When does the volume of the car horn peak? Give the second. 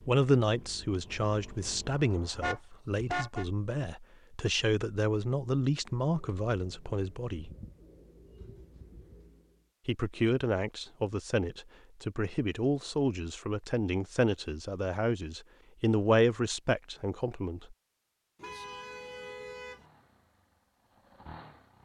3 s.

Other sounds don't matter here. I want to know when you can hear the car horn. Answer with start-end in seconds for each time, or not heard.
2.4-3.5, 18.4-19.9.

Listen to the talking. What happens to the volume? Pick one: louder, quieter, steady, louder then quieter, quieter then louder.
steady.